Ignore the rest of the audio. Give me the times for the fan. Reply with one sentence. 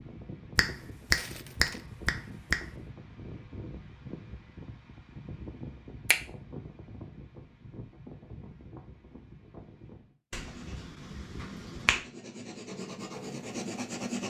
The fan can be heard from 0.0 to 10.2 s.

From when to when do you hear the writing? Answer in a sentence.
You can hear the writing from 10.3 to 14.2 s.